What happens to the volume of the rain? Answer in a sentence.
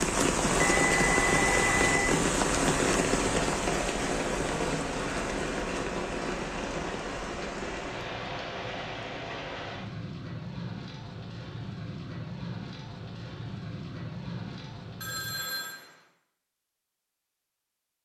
The loudness of the rain goes down.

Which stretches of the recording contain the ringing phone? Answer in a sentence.
You can hear the ringing phone from 0.6 to 2.1 s and from 15.0 to 15.8 s.